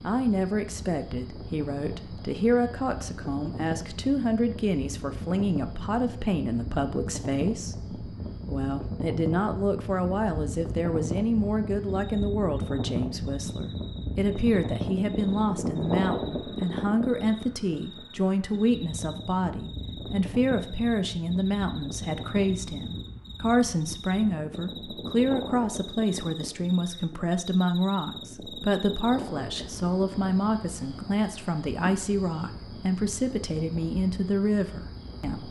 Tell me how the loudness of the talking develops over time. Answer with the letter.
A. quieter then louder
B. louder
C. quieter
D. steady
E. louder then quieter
D.